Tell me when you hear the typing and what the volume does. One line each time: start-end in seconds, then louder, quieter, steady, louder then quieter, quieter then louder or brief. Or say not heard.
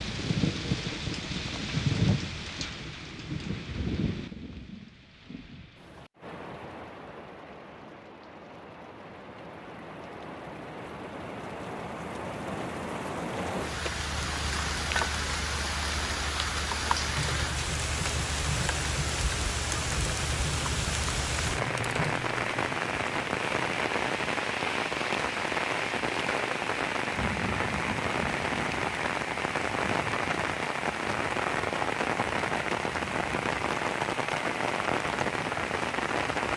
17.0-22.5 steady.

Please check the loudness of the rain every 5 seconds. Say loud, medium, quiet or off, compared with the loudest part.
loud, quiet, medium, loud, loud, loud, loud, loud.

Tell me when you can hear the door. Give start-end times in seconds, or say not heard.
not heard.